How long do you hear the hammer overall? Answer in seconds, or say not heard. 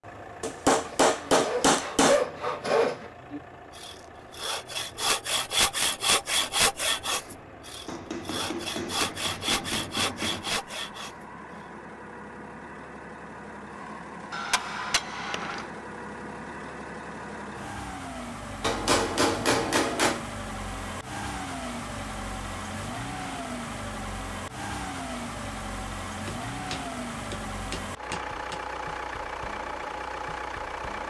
10 s.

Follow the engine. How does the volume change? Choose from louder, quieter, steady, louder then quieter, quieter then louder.
louder.